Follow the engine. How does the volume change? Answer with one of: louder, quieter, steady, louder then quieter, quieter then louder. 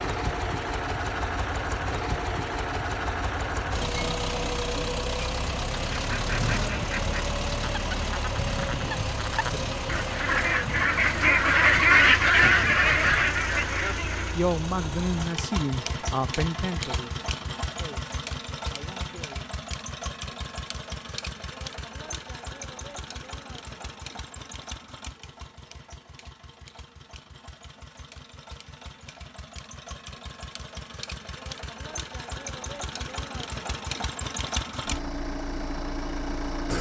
quieter then louder.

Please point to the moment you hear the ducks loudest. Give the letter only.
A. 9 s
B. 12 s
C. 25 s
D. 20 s
B.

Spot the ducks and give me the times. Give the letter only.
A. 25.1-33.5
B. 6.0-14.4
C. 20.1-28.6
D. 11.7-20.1
B.